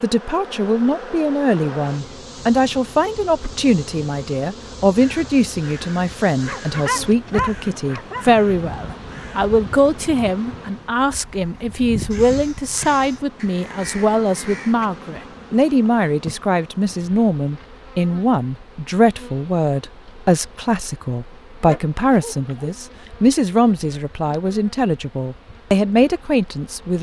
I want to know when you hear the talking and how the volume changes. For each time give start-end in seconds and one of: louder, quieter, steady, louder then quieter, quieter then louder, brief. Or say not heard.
0.0-26.9 steady.